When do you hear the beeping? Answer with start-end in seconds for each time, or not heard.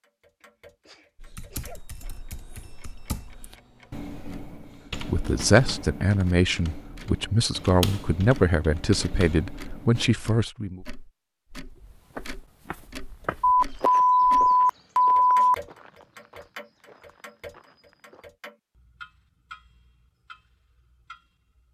1.7-3.5, 13.4-15.6.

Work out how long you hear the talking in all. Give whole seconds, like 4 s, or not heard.
6 s.